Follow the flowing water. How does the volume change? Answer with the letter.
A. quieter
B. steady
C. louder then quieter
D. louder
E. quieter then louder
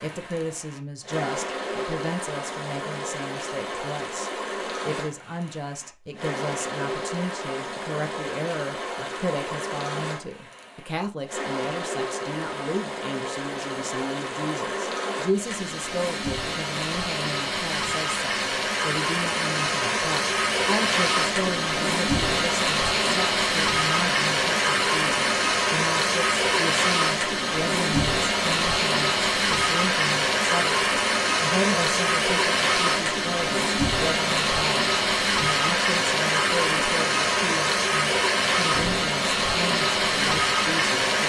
D.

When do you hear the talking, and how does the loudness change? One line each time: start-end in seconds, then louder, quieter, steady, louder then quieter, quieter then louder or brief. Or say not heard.
0.0-41.2 steady.